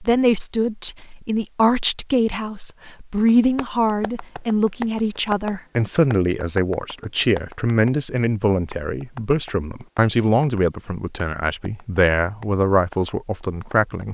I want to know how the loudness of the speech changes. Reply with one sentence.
The loudness of the speech stays about the same.